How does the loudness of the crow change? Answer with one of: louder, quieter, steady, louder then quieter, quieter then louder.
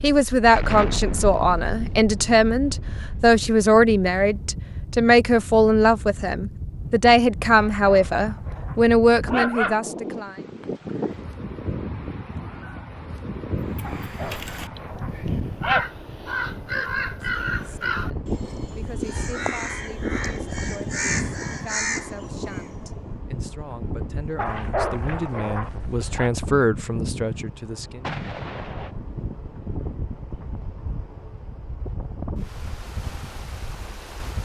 louder.